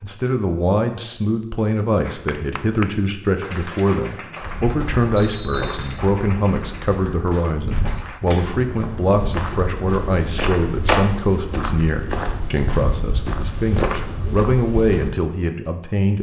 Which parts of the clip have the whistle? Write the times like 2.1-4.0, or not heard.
5.2-6.0.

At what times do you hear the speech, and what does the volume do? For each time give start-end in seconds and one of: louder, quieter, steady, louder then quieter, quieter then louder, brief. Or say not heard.
0.0-16.1 steady.